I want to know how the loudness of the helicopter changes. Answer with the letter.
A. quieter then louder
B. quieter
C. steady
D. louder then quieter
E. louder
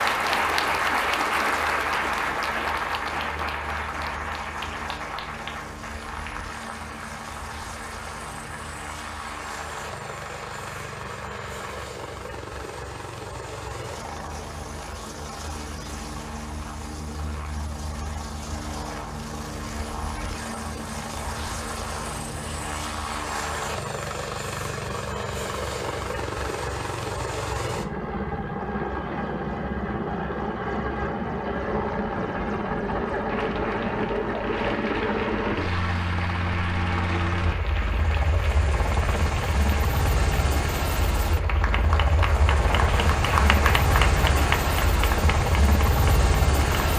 E.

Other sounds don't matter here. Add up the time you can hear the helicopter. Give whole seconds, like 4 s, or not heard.
47 s.